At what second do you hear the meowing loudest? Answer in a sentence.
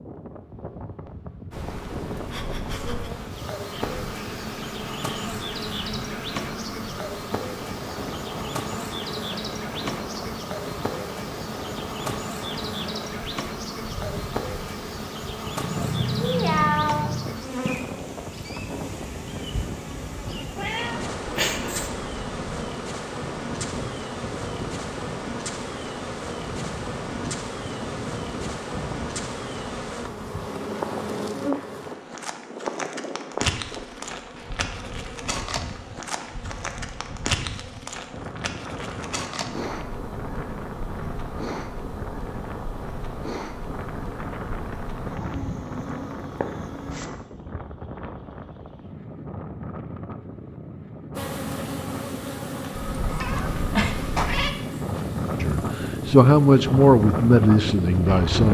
The loudest moment of the meowing is at 17 seconds.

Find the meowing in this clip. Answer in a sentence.
You can hear the meowing from 15.6 to 17.4 s, from 20.6 to 21.9 s and from 52.8 to 54.5 s.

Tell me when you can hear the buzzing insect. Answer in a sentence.
You can hear the buzzing insect from 1.5 to 47.1 s and from 51.1 to 58.2 s.